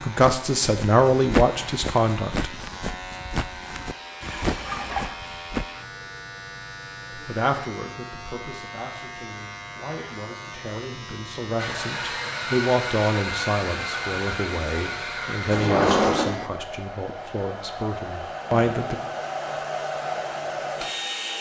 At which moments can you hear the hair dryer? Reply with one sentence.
You can hear the hair dryer from 11.6 to 21.3 s.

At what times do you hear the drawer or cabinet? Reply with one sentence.
You can hear the drawer or cabinet from 15.5 to 16.4 s.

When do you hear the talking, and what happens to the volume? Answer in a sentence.
You can hear the talking briefly from 0.0 to 2.5 s; and from 7.1 to 18.9 s, getting louder then quieter.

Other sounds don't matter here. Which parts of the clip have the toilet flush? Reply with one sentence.
You can hear the toilet flush from 4.2 to 5.2 s.